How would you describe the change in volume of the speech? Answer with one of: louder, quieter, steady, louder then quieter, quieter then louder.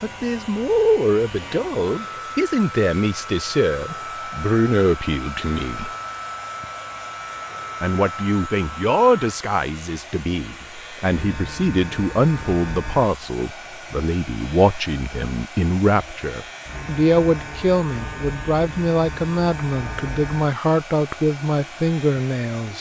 steady.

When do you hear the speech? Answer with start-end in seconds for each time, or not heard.
0.0-5.9, 7.8-22.7.